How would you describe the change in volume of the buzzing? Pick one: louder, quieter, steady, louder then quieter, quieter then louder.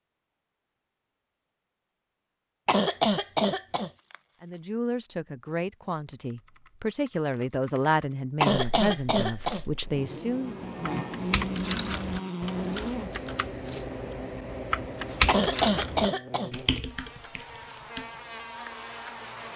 quieter.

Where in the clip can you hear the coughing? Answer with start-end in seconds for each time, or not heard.
2.6-3.9, 8.4-9.6, 15.2-16.5.